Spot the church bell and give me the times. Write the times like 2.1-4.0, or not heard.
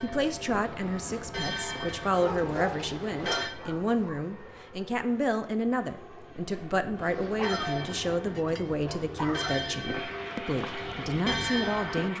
0.0-3.5, 7.0-12.1.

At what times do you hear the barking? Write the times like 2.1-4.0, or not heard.
2.1-4.2, 7.3-9.6.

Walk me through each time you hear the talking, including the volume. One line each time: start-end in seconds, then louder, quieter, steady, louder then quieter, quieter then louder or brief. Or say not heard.
0.0-12.1 steady.